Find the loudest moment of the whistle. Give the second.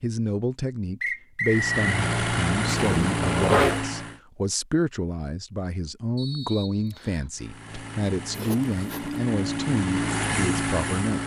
2 s.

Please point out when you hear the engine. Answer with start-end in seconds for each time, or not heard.
1.4-4.2, 7.3-11.2.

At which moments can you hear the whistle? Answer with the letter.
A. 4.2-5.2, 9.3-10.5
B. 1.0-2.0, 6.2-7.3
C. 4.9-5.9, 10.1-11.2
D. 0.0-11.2
B.